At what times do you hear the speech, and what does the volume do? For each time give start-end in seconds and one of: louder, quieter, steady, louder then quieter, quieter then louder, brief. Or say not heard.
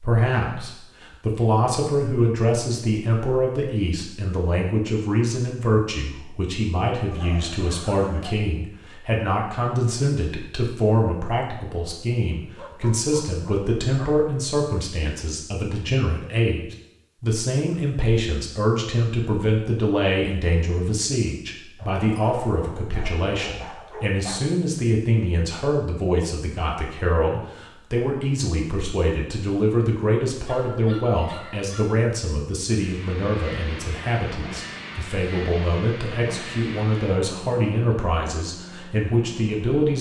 0.0-39.9 steady.